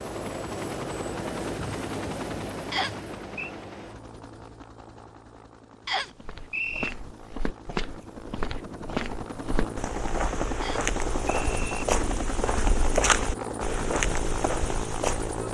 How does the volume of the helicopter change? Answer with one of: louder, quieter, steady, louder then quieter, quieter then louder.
quieter then louder.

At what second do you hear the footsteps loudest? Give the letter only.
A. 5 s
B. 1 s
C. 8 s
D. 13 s
D.